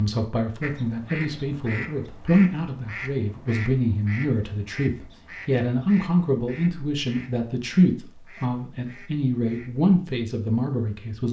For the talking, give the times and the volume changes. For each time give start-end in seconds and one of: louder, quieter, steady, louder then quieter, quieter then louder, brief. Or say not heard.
0.0-11.2 steady.